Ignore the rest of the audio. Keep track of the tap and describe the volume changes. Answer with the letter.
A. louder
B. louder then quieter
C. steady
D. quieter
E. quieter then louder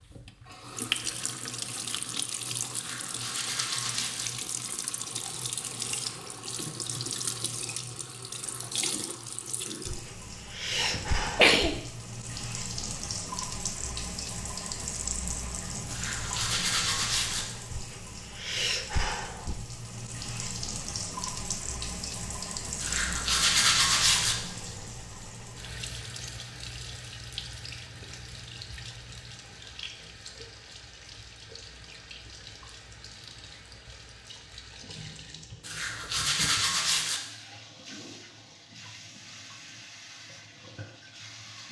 D.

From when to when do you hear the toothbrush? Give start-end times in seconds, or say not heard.
2.7-4.3, 15.8-17.4, 22.8-24.4, 35.6-37.2.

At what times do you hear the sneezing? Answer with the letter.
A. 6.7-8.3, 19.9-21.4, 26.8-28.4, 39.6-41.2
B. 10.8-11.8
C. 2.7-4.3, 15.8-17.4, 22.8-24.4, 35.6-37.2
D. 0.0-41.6
B.